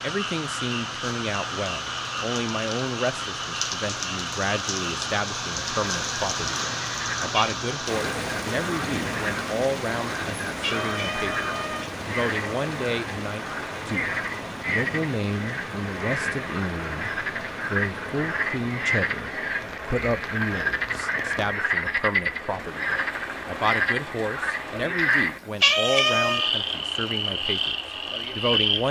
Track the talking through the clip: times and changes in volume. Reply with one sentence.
The talking can be heard from 0.0 to 28.8 s, at a steady volume.